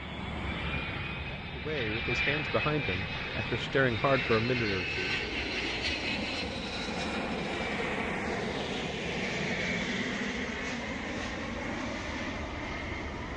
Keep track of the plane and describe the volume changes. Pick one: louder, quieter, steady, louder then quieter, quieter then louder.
steady.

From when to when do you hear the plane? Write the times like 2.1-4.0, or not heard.
0.0-13.3.